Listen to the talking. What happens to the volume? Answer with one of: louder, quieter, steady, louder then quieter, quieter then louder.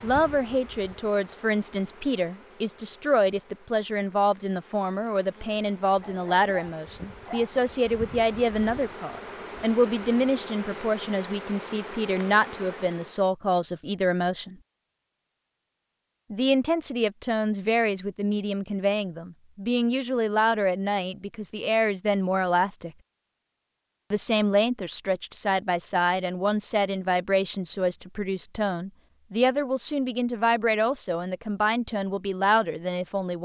steady.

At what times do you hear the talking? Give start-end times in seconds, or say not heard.
0.0-14.6, 16.3-22.9, 24.1-33.4.